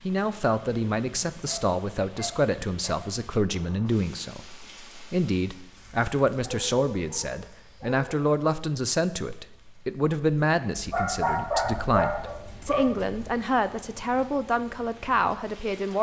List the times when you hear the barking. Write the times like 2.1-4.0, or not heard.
1.4-3.1, 6.4-7.9, 10.8-13.2.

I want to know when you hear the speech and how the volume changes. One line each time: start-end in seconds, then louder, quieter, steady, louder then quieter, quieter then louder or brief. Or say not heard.
0.0-15.9 steady.